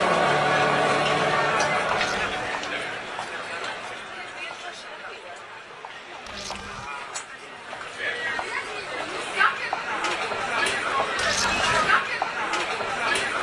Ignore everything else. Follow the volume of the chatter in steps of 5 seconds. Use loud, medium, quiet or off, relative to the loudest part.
loud, medium, loud.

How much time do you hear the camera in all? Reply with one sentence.
You can hear the camera for 2 seconds altogether.